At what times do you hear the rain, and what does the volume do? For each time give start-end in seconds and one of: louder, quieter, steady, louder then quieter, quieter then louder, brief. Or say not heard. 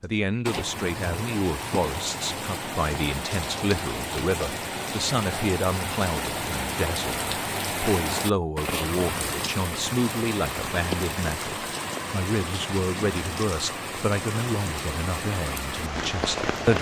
0.0-16.7 steady.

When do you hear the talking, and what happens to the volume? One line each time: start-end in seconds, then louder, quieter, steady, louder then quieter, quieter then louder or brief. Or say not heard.
0.0-16.7 steady.